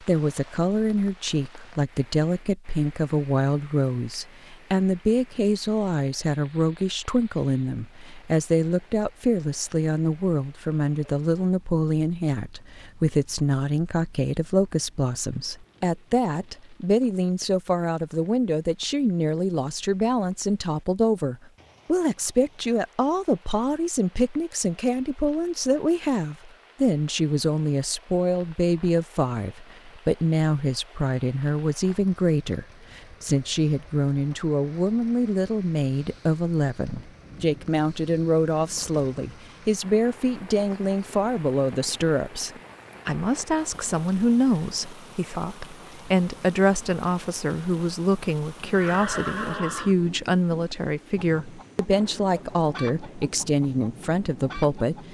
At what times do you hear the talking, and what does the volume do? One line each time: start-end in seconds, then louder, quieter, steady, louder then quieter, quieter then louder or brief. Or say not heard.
0.0-55.0 steady.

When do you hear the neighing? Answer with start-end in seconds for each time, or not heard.
48.6-50.0.